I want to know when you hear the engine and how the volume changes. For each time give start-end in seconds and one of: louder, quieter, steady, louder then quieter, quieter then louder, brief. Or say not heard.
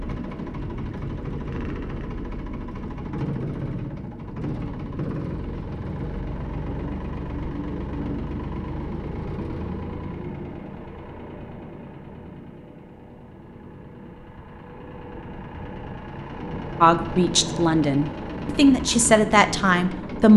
0.0-20.3 quieter then louder.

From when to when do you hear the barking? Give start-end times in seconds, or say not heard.
not heard.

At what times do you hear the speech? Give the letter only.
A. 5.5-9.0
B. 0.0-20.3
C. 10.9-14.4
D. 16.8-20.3
D.